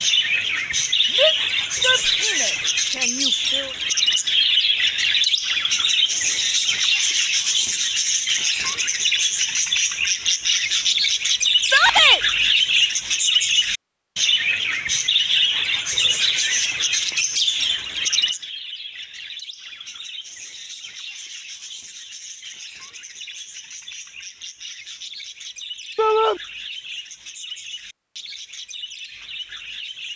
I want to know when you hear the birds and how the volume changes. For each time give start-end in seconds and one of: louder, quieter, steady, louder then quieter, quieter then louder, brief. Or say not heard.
0.0-30.1 quieter.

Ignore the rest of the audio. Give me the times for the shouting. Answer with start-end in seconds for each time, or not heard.
1.1-3.7, 11.6-12.2, 25.9-26.4.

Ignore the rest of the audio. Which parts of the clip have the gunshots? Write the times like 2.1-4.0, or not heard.
not heard.